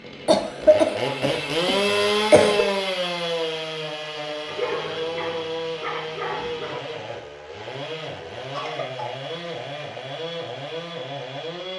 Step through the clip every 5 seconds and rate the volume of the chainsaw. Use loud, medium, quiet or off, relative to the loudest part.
loud, medium, medium.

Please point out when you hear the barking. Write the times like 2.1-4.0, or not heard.
4.5-6.8.